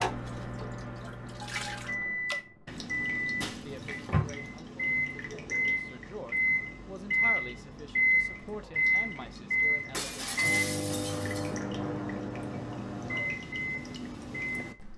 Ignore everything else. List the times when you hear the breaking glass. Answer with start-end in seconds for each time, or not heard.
3.4-4.2, 9.9-11.6.